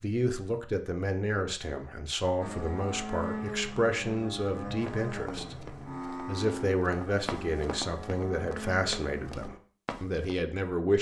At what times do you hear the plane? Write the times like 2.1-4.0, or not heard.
2.4-9.6.